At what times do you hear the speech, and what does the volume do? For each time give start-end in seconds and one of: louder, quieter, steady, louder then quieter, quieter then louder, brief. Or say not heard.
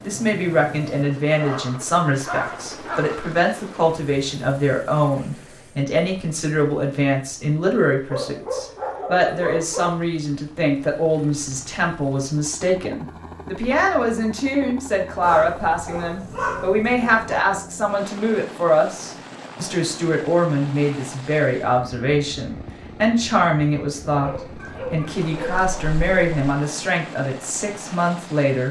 0.0-28.6 steady.